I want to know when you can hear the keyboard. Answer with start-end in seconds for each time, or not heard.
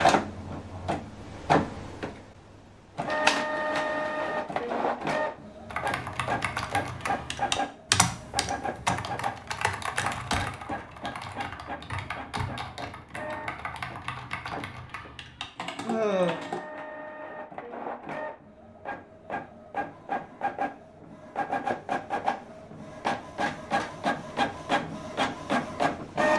5.7-16.6.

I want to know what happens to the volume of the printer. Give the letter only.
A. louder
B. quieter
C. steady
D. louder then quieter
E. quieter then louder
E.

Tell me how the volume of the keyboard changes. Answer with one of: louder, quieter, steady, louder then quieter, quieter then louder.
quieter.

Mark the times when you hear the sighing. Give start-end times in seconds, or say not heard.
15.8-16.4.